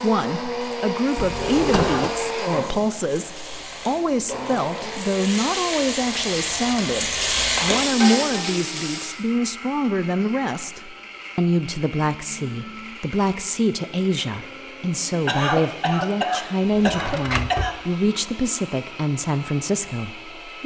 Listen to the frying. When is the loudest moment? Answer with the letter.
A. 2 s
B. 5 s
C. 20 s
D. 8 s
D.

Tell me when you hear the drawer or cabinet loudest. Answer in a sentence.
The volume of the drawer or cabinet peaks at 2 seconds.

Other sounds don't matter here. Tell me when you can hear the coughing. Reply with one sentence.
The coughing can be heard from 1.7 to 2.2 s and from 15.2 to 17.8 s.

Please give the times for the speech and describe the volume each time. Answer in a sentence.
You can hear the speech from 0.0 to 20.6 s, at a steady volume.